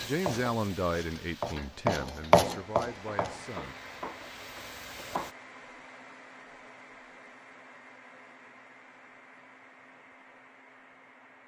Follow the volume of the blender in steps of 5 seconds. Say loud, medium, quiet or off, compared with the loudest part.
loud, loud, medium.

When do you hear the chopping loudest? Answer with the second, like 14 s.
2 s.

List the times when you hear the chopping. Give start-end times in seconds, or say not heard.
0.0-3.5.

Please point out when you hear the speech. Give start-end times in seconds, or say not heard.
0.0-3.8.